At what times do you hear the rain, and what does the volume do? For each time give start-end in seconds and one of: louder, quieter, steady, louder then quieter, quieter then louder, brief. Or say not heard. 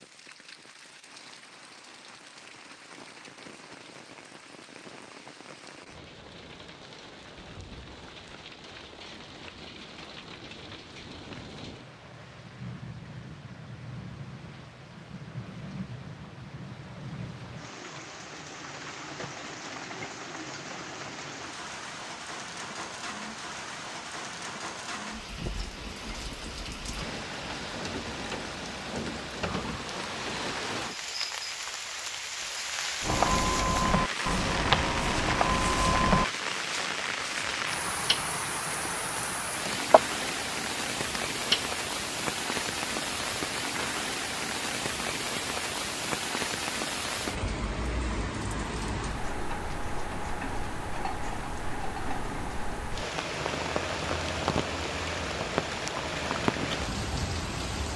0.0-57.9 louder.